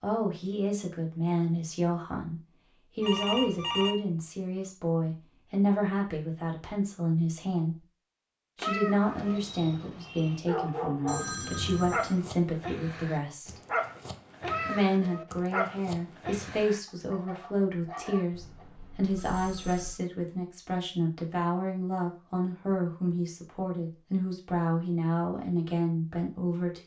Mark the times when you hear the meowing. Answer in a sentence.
You can hear the meowing from 8.6 to 9.4 s and from 14.4 to 15.2 s.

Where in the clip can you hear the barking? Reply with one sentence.
You can hear the barking from 9.1 to 18.6 s.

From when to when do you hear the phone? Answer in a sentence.
The phone can be heard from 3.0 to 4.0 s, from 11.1 to 12.2 s and from 18.3 to 20.0 s.